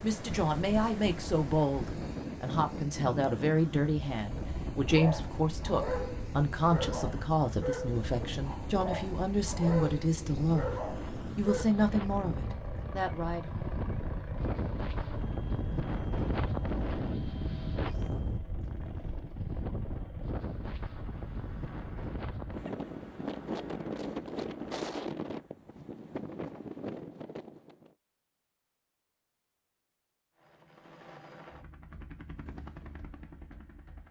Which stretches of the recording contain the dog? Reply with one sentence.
You can hear the dog from 4.8 to 11.7 s.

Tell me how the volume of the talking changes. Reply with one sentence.
The volume of the talking stays about the same.